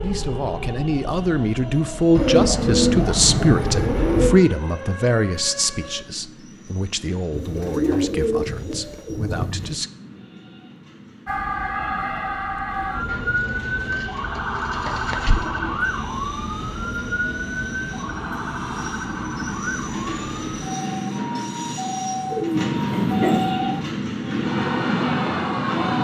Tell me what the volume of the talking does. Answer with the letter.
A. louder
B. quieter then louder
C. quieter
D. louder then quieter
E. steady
C.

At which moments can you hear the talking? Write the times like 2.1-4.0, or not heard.
0.0-9.9.